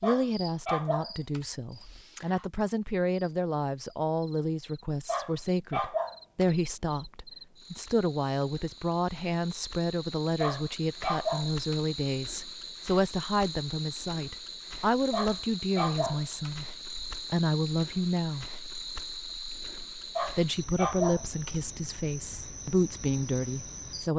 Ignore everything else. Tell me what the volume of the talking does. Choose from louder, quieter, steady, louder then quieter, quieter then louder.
steady.